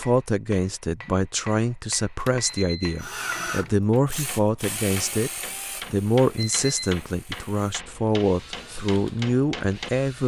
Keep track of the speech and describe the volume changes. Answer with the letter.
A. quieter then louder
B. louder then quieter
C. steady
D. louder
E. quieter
C.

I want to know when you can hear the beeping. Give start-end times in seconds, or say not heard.
2.4-3.0, 6.3-7.0.